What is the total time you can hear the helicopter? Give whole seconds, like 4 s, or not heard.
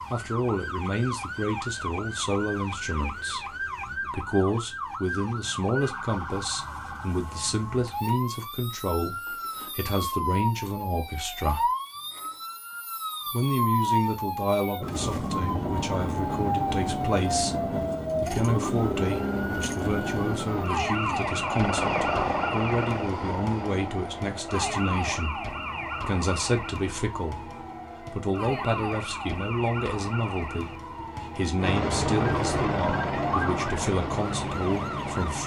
10 s.